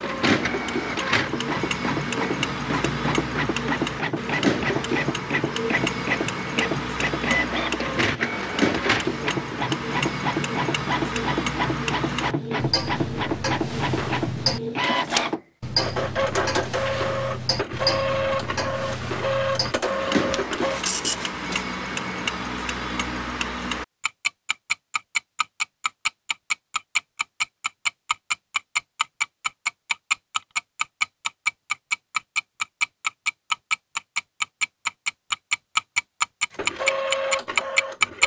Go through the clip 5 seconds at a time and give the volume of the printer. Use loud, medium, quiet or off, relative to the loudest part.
loud, loud, loud, loud, loud, off, off, loud.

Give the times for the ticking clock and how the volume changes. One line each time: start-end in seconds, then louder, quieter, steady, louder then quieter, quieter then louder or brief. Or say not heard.
0.0-38.2 louder.